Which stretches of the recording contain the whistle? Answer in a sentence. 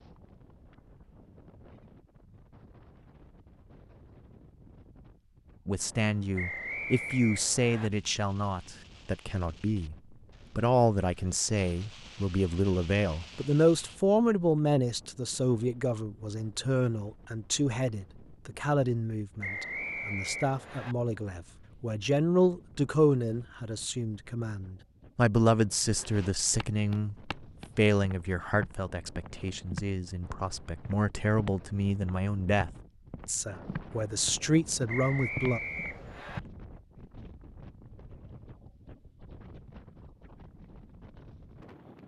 The whistle can be heard from 6.3 to 7.9 s, from 19.4 to 20.9 s and from 34.9 to 36.4 s.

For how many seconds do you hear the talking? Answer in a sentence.
You can hear the talking for 29 seconds altogether.